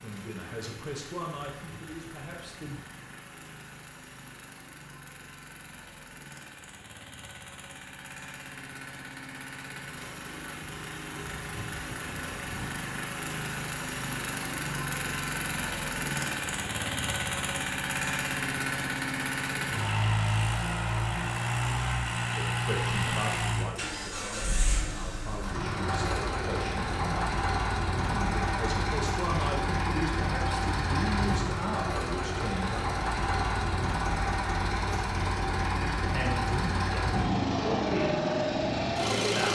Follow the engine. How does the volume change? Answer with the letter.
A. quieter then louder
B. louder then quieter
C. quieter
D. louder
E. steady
D.